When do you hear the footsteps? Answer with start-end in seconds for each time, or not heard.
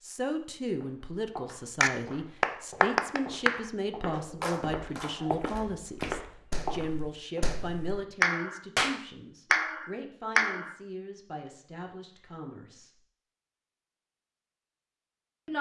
0.7-7.5.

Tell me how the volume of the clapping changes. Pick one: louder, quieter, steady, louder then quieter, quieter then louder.
quieter then louder.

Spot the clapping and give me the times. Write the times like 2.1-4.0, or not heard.
1.8-10.8.